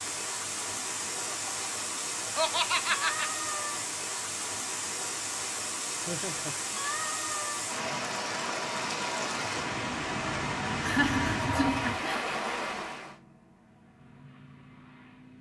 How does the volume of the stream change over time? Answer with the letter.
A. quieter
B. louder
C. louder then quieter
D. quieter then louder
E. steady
E.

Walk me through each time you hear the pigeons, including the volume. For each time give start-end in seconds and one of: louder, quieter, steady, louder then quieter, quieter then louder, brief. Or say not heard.
not heard.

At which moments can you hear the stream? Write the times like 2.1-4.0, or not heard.
0.0-13.2.